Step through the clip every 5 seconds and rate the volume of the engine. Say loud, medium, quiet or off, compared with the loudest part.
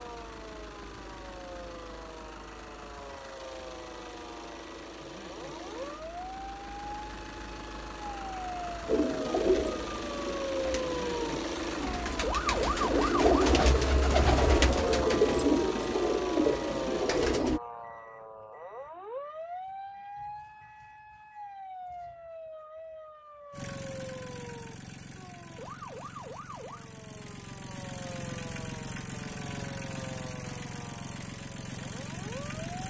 medium, medium, loud, loud, medium, medium, loud.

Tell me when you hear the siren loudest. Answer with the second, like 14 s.
13 s.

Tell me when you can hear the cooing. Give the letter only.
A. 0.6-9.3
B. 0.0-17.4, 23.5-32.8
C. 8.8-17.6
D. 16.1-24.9
C.